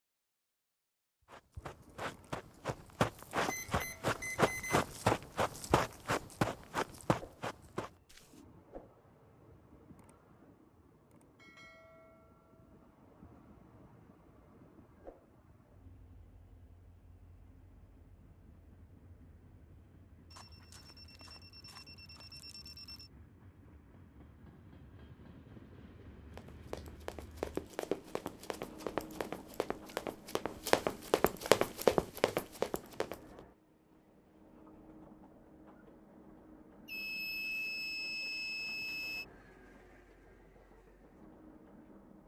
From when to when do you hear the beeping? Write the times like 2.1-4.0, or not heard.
3.5-4.8, 20.3-23.1, 36.9-39.2.